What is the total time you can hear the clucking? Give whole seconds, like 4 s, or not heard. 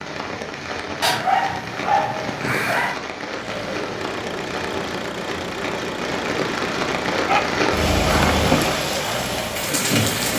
not heard.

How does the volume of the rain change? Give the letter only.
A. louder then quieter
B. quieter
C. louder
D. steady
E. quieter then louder
C.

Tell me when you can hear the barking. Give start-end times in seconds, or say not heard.
1.0-3.0, 7.2-8.8.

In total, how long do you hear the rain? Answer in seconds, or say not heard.
10 s.